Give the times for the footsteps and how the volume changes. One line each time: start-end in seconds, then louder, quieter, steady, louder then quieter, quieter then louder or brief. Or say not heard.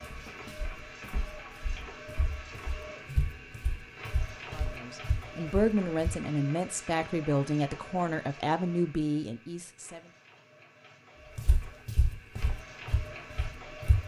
0.0-6.2 louder
11.3-14.0 brief.